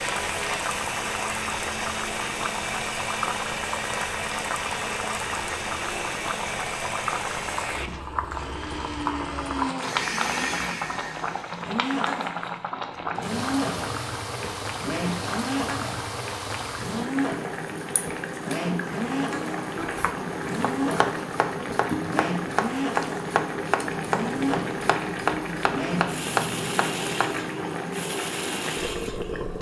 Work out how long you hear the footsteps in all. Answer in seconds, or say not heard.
not heard.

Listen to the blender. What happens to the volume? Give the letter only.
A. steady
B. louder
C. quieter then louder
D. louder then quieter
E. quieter
A.